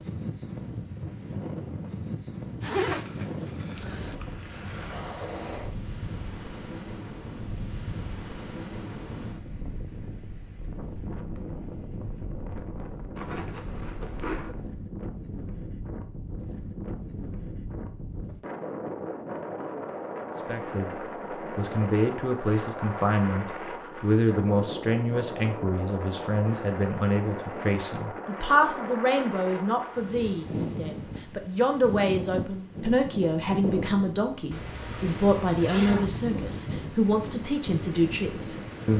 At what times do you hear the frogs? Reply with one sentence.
You can't hear the frogs here.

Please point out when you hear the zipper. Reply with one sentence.
The zipper can be heard from 2.6 to 4.2 s, from 13.2 to 14.6 s and from 34.5 to 36.2 s.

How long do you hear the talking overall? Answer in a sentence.
The talking can be heard for 18 seconds in total.